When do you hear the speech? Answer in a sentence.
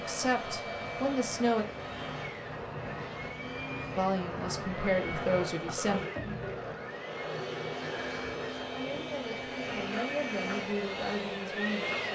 The speech can be heard from 0.0 to 1.6 s, from 4.0 to 6.0 s and from 8.7 to 12.1 s.